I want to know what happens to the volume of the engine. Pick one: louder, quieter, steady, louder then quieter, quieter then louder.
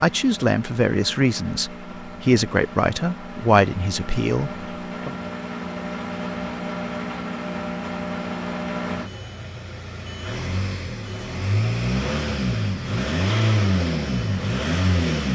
louder.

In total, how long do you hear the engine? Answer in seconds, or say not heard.
15 s.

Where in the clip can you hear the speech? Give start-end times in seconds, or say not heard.
0.0-5.2.